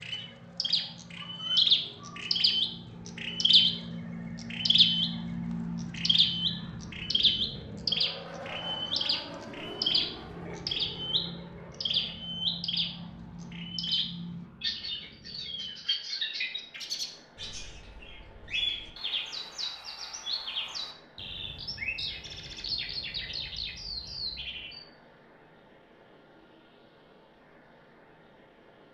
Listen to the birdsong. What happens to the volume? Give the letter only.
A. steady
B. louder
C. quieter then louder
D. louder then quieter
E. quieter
E.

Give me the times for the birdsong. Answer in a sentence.
You can hear the birdsong from 0.0 to 24.9 s.